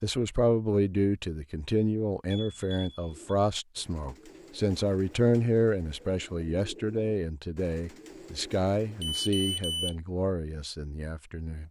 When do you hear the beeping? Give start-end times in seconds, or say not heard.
2.3-3.1, 9.0-9.9.